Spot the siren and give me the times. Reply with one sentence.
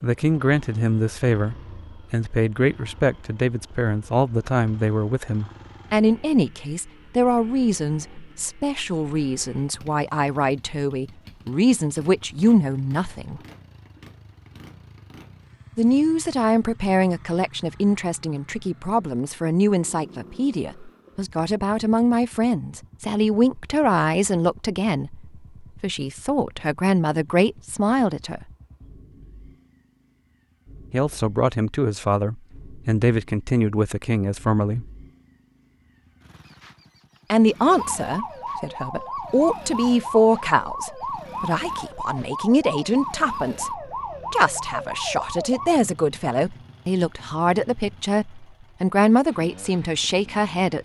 The siren can be heard from 37.6 to 45.8 s.